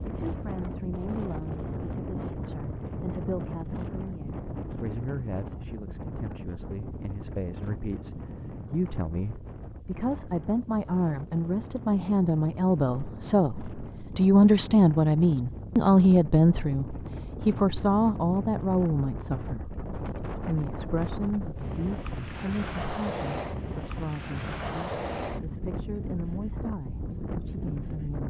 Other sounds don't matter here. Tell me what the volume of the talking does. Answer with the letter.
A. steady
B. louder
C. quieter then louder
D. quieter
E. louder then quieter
E.